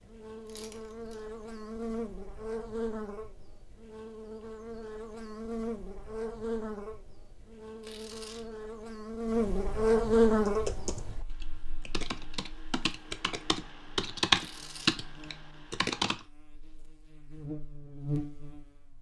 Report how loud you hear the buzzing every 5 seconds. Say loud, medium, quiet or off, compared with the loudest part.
medium, loud, loud, medium.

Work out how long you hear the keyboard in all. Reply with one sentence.
You can hear the keyboard for 6 seconds altogether.